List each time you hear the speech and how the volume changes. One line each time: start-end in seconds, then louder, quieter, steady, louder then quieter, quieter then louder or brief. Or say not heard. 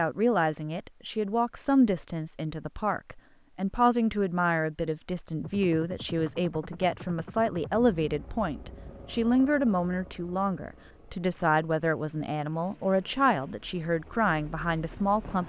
0.0-15.4 steady.